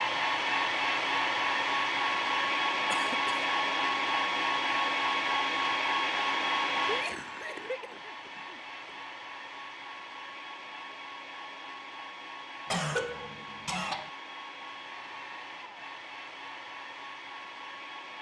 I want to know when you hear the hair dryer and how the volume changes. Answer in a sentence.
You can hear the hair dryer from 0.0 to 18.1 s, getting quieter.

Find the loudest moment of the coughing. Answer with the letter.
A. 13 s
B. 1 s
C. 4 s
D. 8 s
A.